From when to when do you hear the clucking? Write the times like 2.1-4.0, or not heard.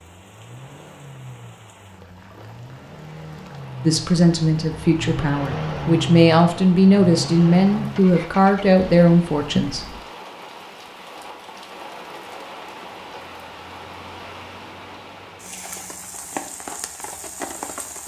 not heard.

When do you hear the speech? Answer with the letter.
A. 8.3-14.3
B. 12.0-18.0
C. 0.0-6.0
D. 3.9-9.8
D.